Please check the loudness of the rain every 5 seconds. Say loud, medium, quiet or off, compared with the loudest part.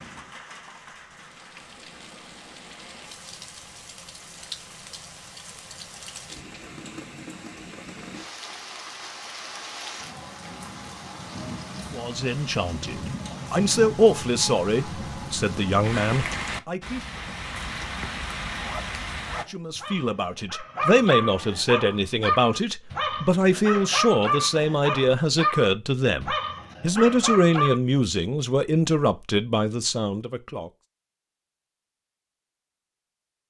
medium, medium, loud, loud, off, off, off.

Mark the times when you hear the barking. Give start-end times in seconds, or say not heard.
18.6-27.8.